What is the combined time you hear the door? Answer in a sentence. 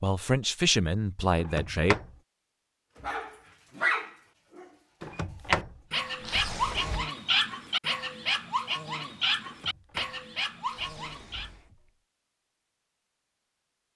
You can hear the door for 5 seconds altogether.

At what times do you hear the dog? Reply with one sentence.
The dog can be heard from 3.0 to 11.5 s.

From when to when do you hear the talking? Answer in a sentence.
The talking can be heard from 0.0 to 1.9 s.